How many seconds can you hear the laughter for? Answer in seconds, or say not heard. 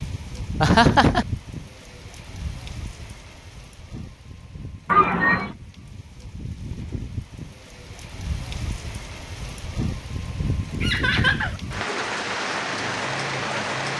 2 s.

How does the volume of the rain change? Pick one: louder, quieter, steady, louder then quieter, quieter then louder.
quieter then louder.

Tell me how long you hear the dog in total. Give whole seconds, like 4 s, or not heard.
not heard.